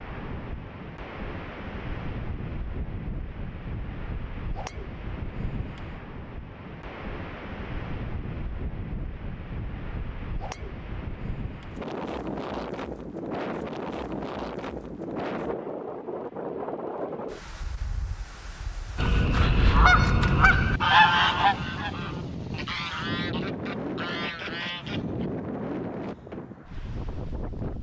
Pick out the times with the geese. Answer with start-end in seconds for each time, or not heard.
18.9-25.3.